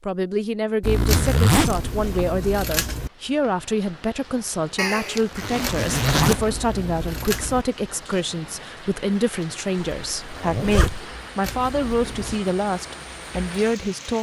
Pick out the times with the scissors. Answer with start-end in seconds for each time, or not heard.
1.1-3.1, 5.6-7.7, 11.4-12.4.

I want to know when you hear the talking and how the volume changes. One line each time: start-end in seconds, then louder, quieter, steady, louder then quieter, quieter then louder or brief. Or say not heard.
0.0-14.1 steady.